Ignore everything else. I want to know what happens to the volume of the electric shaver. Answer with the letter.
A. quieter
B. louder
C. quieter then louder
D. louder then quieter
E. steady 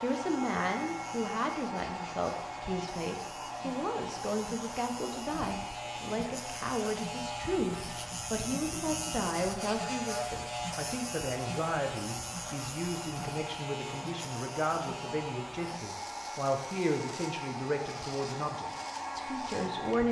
D.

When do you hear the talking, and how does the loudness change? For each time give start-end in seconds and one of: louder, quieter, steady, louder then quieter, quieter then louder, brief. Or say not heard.
0.0-20.0 steady.